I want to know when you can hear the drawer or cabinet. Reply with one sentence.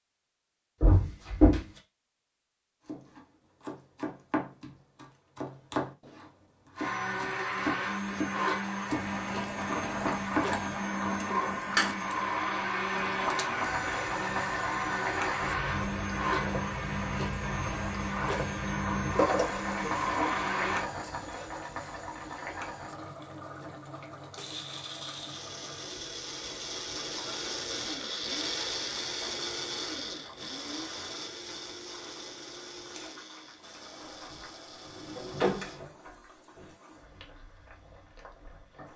The drawer or cabinet can be heard from 0.8 to 1.6 s, from 19.1 to 20.4 s and from 34.0 to 36.7 s.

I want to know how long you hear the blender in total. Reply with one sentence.
The blender can be heard for 26 seconds in total.